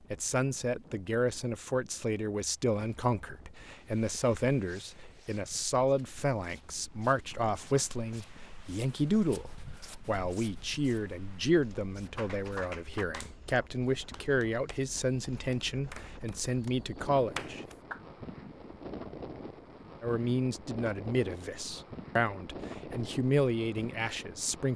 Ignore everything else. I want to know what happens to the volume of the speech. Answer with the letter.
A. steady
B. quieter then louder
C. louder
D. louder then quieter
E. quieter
A.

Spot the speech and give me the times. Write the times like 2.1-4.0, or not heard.
0.1-17.6, 20.0-24.7.